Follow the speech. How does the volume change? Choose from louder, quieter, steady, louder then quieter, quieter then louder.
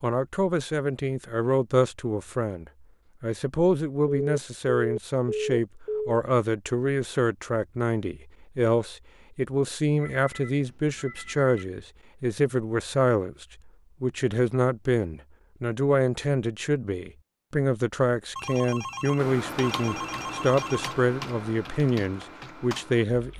steady.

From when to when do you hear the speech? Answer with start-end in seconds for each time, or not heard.
0.0-23.3.